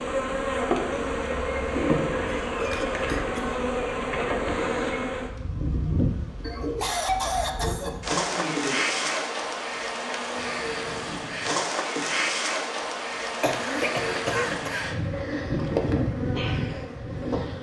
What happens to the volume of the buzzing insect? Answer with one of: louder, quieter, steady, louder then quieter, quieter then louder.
steady.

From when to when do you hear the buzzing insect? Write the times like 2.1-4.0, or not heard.
0.0-17.5.